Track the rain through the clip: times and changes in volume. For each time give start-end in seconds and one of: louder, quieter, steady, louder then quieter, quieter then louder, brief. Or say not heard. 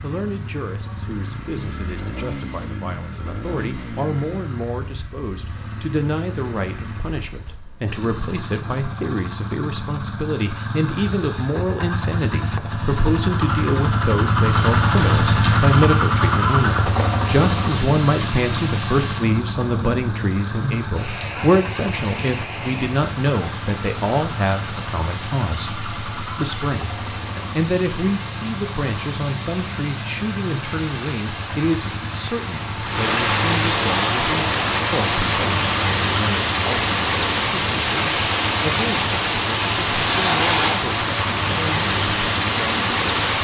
14.4-43.3 louder.